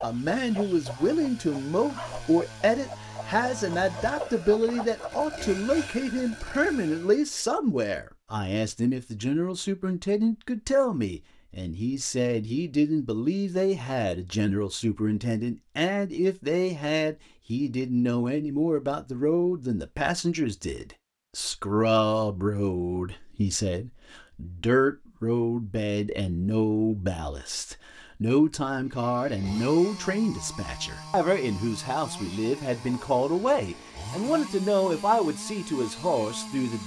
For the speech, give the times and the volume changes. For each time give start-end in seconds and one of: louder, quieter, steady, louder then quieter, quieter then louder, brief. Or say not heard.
0.0-36.8 steady.